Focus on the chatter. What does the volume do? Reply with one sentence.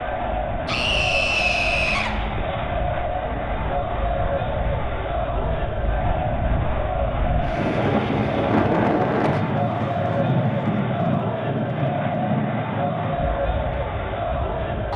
The loudness of the chatter stays about the same.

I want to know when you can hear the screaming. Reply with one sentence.
The screaming can be heard from 0.7 to 2.1 s.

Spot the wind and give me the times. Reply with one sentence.
You can hear the wind from 0.0 to 14.9 s.